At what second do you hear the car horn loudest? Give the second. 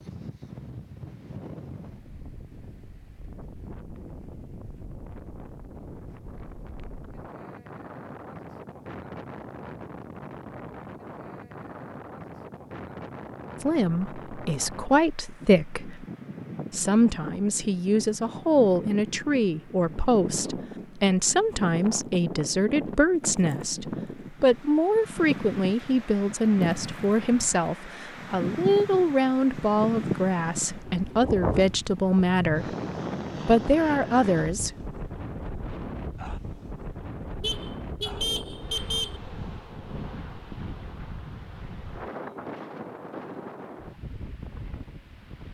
39 s.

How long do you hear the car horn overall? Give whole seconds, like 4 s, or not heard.
2 s.